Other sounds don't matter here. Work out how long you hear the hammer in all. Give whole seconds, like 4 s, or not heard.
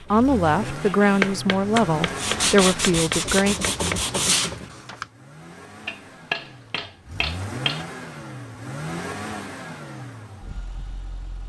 5 s.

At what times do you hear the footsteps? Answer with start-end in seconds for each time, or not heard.
not heard.